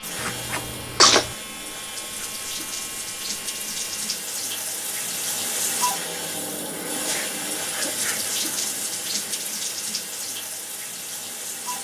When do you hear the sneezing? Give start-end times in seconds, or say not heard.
0.2-1.3, 6.9-8.2.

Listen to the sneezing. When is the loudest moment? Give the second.
1 s.